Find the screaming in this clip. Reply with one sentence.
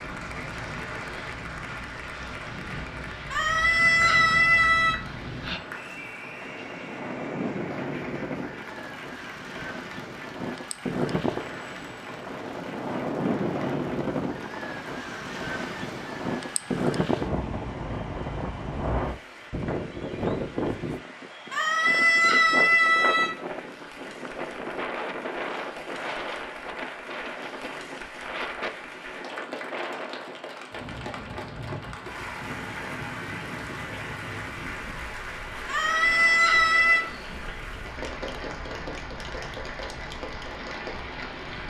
You can hear the screaming from 3.3 to 5.0 s, from 21.5 to 23.4 s and from 35.6 to 37.0 s.